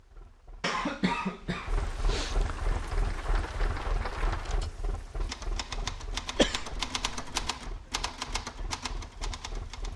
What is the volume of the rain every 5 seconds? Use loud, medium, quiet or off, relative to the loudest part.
loud, medium.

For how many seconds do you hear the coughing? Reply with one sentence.
The coughing can be heard for 3 seconds in total.